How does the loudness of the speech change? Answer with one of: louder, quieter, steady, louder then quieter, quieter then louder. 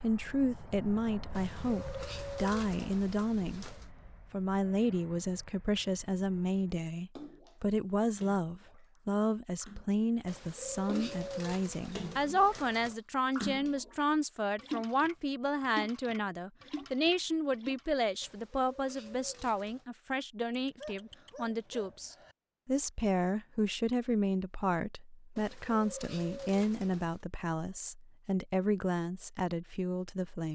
steady.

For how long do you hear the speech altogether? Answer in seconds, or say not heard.
30 s.